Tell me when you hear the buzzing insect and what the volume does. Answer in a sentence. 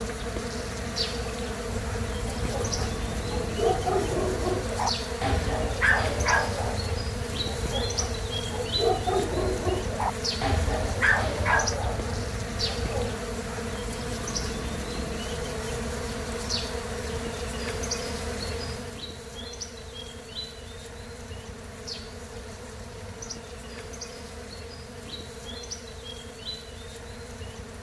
The buzzing insect can be heard from 0.0 to 27.7 s, getting quieter.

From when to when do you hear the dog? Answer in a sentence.
You can hear the dog from 1.7 to 13.2 s.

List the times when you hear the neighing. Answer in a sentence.
You can't hear the neighing here.